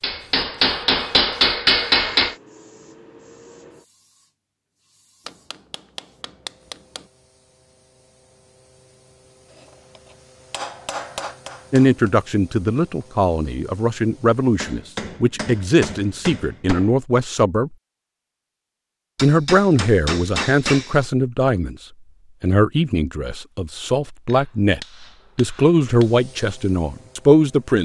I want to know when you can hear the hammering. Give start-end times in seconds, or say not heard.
0.0-2.4, 5.2-7.0, 10.5-12.1, 14.6-17.0, 19.1-21.1, 24.2-26.1.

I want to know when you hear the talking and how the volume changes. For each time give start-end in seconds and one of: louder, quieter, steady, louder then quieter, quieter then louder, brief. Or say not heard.
11.7-17.7 steady
19.2-21.8 brief
22.4-27.8 louder.